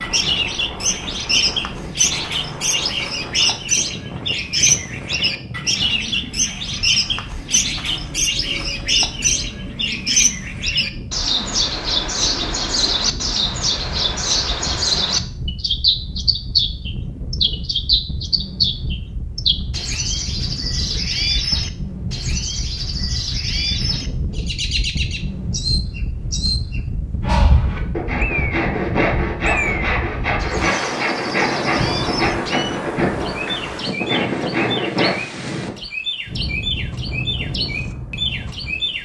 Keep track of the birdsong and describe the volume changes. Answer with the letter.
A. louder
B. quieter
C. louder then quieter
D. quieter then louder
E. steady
B.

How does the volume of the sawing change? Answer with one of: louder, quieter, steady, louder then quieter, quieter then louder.
steady.